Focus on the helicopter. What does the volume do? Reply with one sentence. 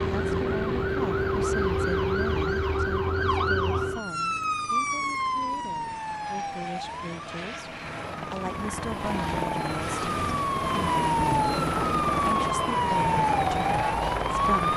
The loudness of the helicopter goes down, then up.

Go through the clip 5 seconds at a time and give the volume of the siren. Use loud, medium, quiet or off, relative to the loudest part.
loud, medium, loud.